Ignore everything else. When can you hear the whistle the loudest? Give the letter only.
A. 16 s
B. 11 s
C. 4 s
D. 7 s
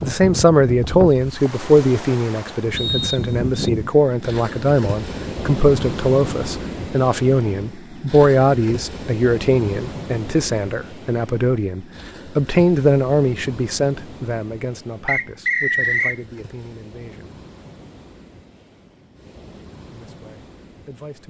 A.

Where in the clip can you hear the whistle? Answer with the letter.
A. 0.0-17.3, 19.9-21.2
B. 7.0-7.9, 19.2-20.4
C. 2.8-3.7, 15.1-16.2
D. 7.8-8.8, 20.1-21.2
C.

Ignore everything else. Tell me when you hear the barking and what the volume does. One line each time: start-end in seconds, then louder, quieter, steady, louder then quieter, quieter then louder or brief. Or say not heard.
not heard.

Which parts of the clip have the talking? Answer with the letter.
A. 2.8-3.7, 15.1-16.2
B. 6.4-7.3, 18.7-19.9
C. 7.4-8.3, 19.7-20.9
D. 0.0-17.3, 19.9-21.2
D.